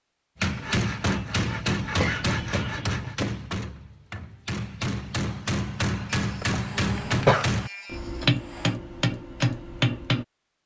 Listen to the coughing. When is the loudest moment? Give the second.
7 s.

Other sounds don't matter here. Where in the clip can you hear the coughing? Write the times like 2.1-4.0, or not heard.
1.9-3.4, 6.4-7.5.